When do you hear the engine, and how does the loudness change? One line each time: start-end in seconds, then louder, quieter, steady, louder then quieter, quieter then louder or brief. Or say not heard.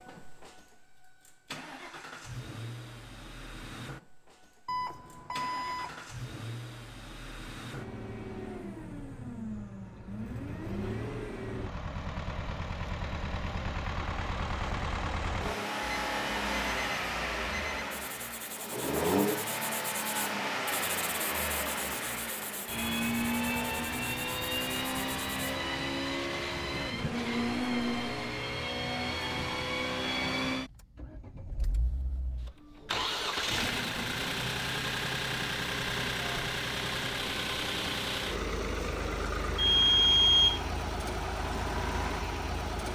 0.0-42.9 louder.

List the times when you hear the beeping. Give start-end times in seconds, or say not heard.
4.7-6.1, 15.8-17.9, 39.5-40.6.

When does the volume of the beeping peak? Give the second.
40 s.